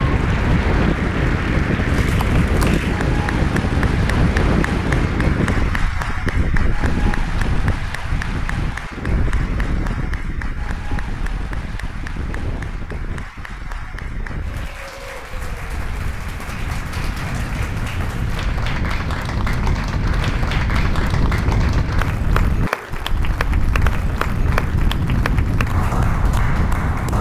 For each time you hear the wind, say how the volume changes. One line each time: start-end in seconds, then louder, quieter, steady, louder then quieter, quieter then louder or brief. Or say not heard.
0.0-27.1 quieter then louder.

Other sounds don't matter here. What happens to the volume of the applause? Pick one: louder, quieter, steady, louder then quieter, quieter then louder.
quieter then louder.